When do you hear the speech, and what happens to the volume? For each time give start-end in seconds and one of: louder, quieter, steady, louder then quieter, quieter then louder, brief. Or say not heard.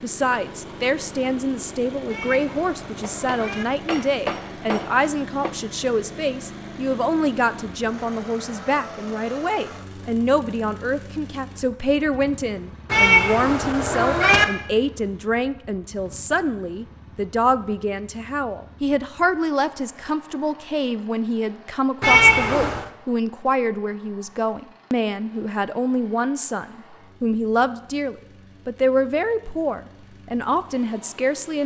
0.0-31.6 steady.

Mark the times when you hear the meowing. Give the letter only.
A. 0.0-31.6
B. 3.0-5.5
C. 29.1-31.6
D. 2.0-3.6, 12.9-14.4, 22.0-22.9
D.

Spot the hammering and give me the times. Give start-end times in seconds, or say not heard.
3.0-5.5.